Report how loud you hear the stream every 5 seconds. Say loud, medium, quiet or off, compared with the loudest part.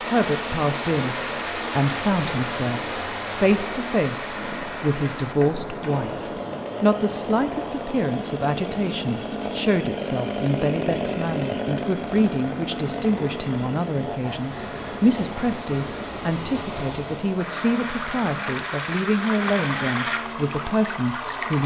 loud, medium, medium, loud, loud.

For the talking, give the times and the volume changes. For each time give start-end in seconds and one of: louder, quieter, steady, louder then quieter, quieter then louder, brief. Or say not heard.
0.1-21.6 steady.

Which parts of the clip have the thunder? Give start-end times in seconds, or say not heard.
not heard.